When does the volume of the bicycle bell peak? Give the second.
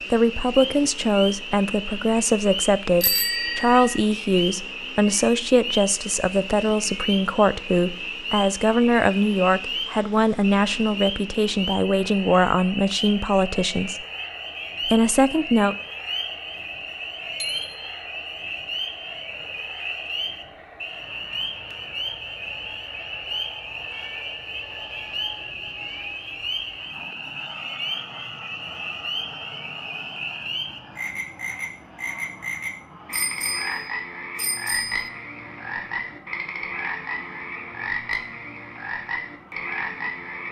3 s.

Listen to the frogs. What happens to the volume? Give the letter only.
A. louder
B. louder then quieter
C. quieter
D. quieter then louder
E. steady
E.